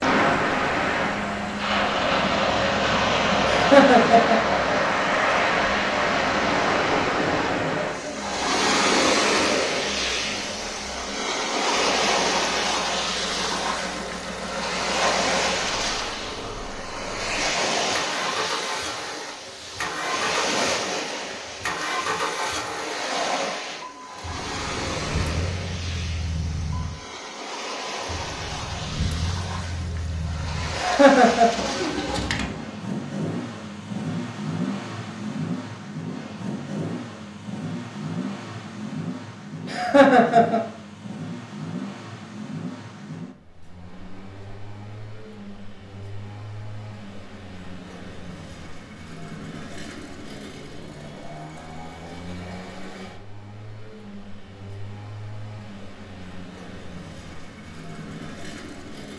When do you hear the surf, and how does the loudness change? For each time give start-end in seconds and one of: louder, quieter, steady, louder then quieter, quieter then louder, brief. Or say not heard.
0.0-32.3 quieter.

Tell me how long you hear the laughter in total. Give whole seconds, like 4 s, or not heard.
3 s.